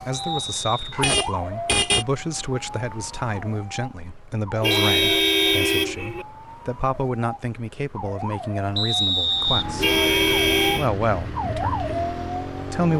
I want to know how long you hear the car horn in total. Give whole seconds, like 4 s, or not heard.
4 s.